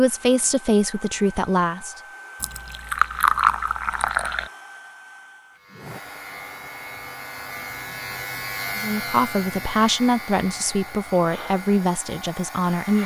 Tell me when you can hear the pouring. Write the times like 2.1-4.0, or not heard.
2.4-4.5.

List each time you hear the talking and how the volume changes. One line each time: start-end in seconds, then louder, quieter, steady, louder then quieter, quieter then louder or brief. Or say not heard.
0.0-1.9 brief
8.8-13.0 quieter.